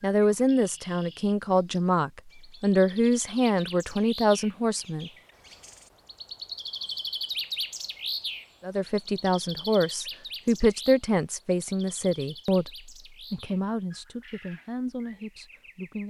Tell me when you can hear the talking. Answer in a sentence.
The talking can be heard from 0.0 to 5.1 s and from 8.6 to 16.0 s.